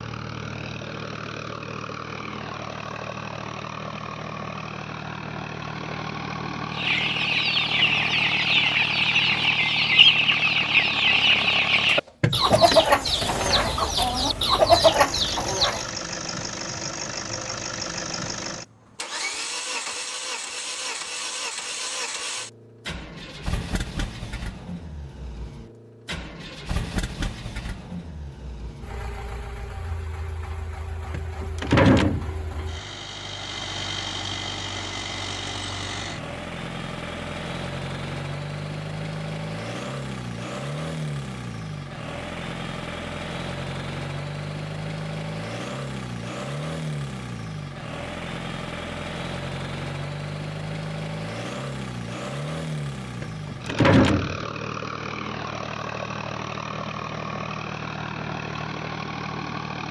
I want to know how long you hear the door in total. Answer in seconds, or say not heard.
3 s.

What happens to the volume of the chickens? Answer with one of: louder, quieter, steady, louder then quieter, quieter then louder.
steady.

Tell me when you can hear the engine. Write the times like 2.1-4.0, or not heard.
0.0-59.8.